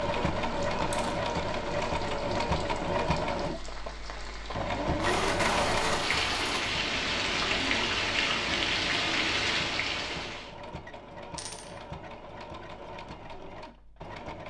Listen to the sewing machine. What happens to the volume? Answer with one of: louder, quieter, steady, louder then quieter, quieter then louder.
quieter.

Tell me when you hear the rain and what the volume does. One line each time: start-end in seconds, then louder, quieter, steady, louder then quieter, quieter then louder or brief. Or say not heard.
0.0-10.5 louder.